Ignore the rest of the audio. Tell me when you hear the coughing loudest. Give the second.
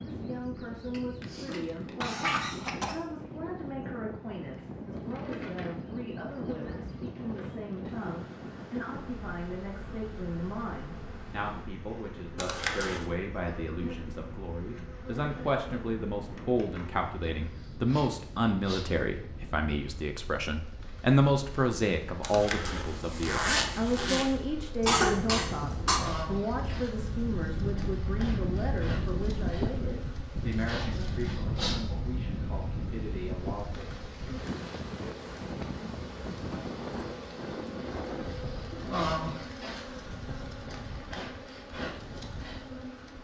25 s.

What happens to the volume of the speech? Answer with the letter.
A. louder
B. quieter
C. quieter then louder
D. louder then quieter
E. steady
D.